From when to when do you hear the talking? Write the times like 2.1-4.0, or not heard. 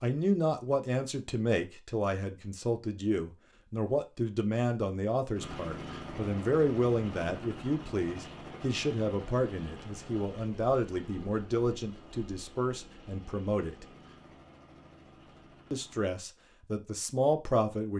0.0-13.8, 15.7-17.9.